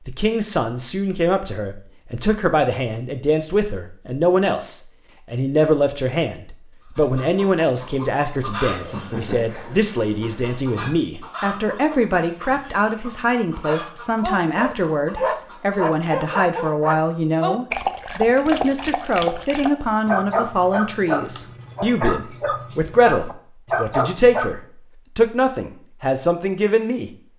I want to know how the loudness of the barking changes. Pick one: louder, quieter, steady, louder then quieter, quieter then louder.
steady.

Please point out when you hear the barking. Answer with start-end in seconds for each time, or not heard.
13.7-24.6.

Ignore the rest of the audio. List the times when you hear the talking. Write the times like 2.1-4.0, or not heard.
0.1-27.2.